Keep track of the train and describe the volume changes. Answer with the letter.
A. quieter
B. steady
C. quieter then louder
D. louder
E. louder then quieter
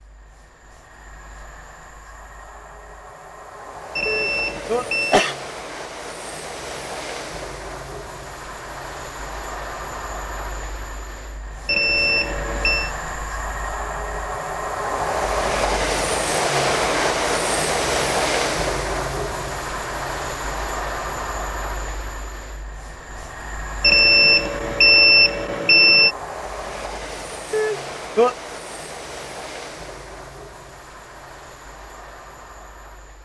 E.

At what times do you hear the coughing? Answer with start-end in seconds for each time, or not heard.
4.0-5.3, 27.5-28.4.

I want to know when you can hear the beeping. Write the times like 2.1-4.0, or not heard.
4.0-5.2, 11.7-12.9, 23.8-26.1.